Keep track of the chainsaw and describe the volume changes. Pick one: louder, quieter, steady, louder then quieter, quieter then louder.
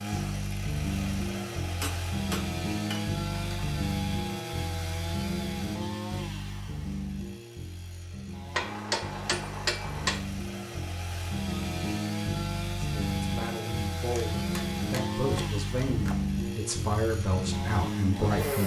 quieter then louder.